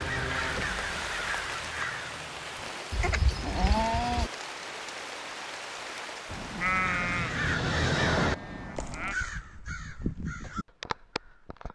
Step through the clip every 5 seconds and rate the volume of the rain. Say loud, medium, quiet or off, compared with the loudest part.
loud, loud, off.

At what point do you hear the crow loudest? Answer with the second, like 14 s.
8 s.